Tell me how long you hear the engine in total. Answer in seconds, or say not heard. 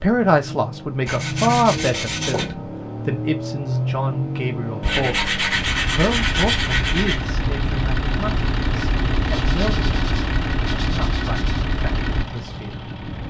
13 s.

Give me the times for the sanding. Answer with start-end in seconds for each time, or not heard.
1.1-2.5, 4.8-7.2, 9.2-11.7.